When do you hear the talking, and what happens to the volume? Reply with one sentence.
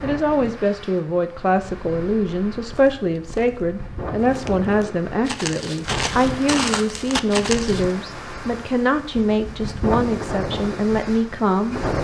You can hear the talking from 0.0 to 11.8 s, at a steady volume.